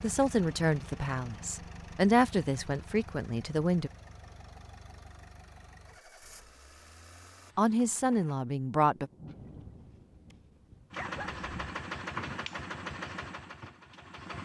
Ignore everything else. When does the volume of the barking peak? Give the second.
11 s.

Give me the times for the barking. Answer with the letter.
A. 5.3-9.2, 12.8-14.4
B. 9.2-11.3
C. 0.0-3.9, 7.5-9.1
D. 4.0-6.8
B.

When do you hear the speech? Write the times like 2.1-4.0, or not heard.
0.0-3.9, 7.5-9.1.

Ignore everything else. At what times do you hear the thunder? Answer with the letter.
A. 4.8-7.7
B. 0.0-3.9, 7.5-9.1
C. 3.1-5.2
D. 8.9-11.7
D.